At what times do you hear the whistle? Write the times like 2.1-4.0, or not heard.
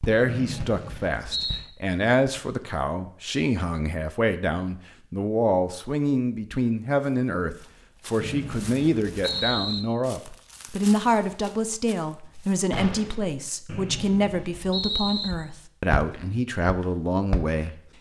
0.2-1.6, 8.2-9.8, 13.7-15.3.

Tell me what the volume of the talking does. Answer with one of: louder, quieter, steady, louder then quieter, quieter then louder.
steady.